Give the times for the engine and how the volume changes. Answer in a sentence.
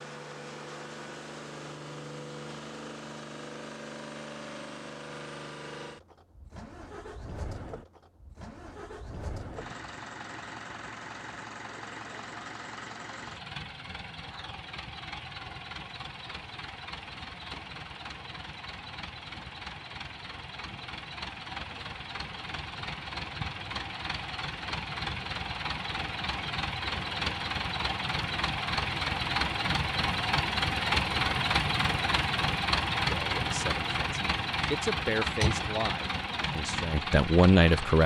The engine can be heard from 0.0 to 38.0 s, getting louder.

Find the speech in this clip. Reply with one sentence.
You can hear the speech from 33.0 to 38.0 s.